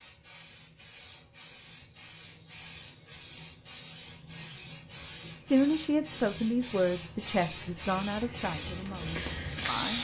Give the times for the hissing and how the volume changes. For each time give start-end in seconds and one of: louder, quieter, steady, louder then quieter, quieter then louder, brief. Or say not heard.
0.0-9.9 louder.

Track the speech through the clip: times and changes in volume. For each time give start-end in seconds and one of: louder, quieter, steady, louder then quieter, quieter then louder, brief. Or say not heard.
5.5-9.9 quieter.